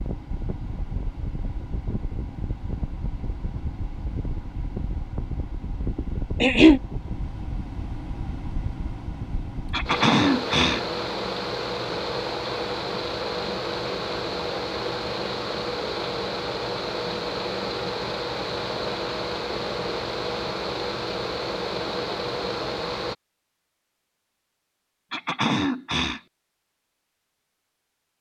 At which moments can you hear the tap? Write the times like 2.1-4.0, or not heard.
not heard.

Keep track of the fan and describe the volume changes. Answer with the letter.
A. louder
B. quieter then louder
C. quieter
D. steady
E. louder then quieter
A.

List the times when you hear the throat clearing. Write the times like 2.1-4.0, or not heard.
6.0-6.8, 9.7-10.8, 25.1-26.2.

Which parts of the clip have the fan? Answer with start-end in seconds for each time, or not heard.
0.0-23.1.